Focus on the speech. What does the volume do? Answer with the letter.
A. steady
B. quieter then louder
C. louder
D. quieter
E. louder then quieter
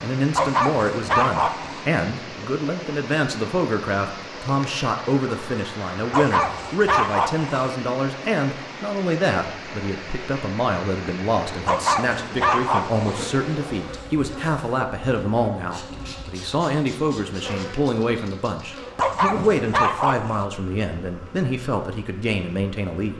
A.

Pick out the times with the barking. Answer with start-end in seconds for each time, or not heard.
0.3-1.8, 6.1-7.7, 11.7-13.2, 18.9-20.4.